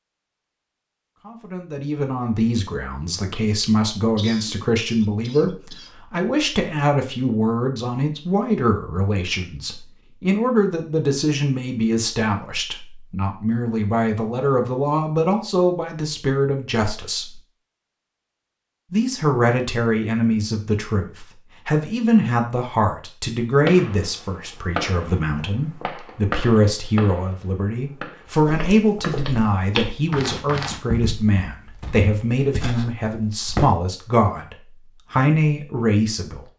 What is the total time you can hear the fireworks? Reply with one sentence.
You can hear the fireworks for 6 seconds altogether.